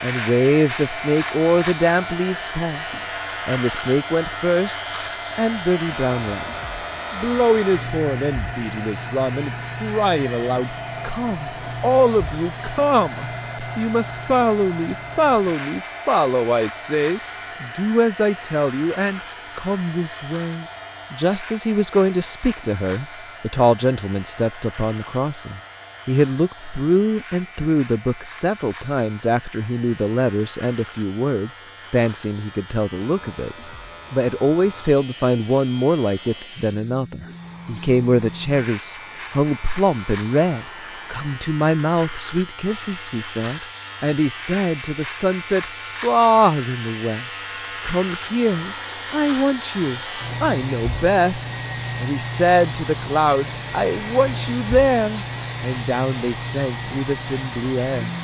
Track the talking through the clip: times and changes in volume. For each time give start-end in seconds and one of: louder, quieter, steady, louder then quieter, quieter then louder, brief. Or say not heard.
0.0-58.1 steady.